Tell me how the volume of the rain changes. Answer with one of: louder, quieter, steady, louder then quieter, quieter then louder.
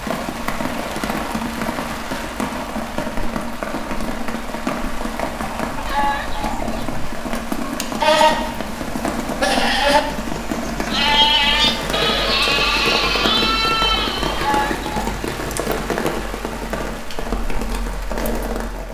steady.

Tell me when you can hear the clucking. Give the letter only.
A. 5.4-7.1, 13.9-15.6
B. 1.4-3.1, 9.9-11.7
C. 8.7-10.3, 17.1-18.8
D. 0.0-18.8
A.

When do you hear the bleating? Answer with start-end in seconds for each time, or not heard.
8.0-14.5.